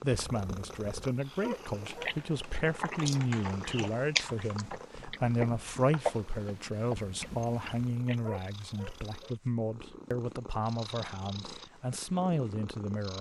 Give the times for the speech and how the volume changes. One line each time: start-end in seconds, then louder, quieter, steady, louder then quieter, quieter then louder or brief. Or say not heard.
0.0-13.1 steady.